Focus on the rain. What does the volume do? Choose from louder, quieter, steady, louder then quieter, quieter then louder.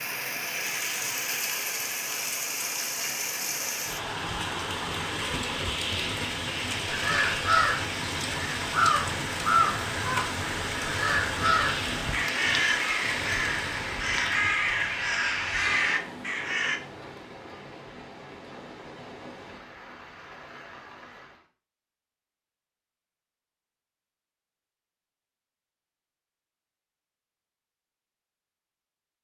quieter.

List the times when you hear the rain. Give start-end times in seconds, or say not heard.
0.0-21.4.